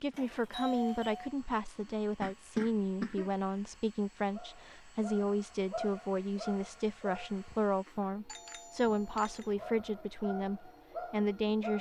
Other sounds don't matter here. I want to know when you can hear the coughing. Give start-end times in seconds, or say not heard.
2.2-3.3.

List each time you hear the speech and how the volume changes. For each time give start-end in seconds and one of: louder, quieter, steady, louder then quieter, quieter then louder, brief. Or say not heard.
0.0-11.7 steady.